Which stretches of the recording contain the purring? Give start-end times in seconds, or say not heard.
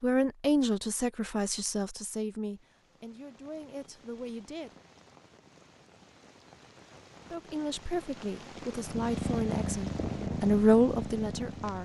8.8-11.8.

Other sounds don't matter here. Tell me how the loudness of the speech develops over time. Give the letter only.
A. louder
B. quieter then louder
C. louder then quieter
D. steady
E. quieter
B.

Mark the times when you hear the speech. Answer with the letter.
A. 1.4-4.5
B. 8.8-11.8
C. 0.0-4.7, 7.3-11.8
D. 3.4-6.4
C.